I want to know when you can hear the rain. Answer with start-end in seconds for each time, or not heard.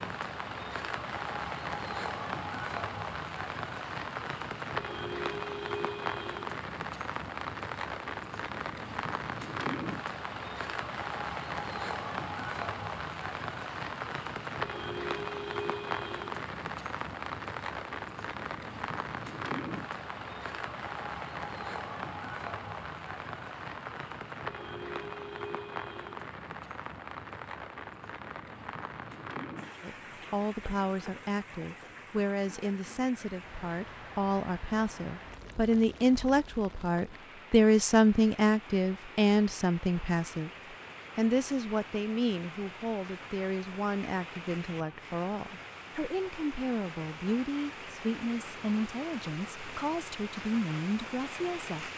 0.0-51.9.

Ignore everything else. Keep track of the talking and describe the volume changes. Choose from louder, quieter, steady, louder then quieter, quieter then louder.
louder then quieter.